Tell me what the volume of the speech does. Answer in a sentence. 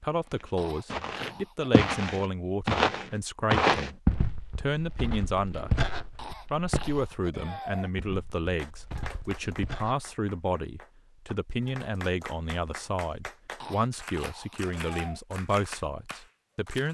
The loudness of the speech stays about the same.